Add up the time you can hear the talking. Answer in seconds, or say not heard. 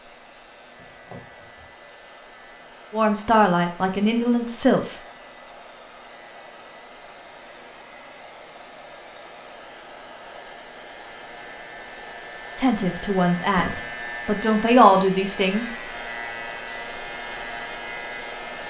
5 s.